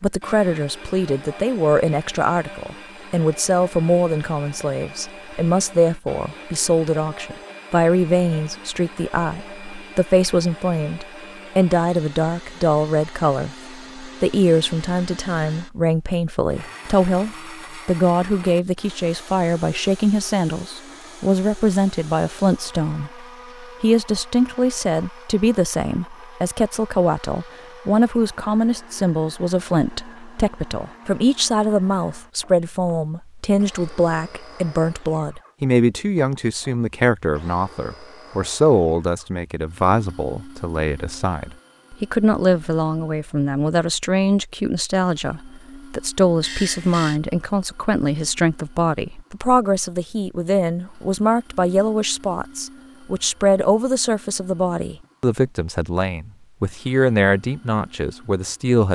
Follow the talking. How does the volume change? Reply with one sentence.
The loudness of the talking stays about the same.